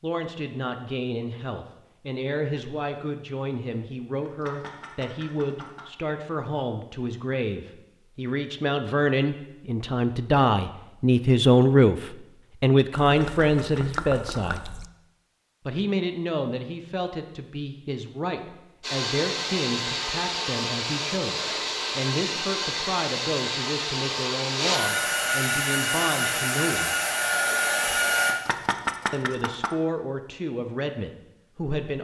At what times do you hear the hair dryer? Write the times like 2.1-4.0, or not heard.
18.8-28.4.